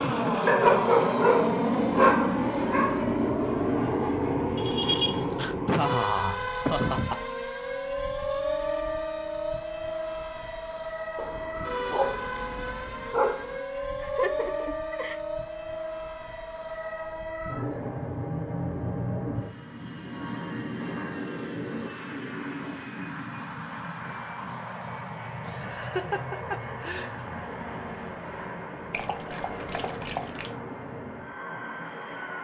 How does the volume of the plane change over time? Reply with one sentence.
The volume of the plane goes down.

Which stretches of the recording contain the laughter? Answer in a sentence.
You can hear the laughter from 4.5 to 7.2 s, from 13.9 to 15.2 s and from 25.4 to 27.1 s.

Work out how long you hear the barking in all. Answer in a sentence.
The barking can be heard for 7 seconds in total.